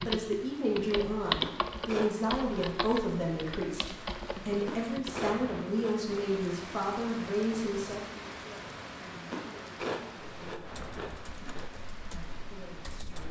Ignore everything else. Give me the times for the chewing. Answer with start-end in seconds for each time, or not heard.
1.4-2.8, 4.7-6.4, 9.3-11.7.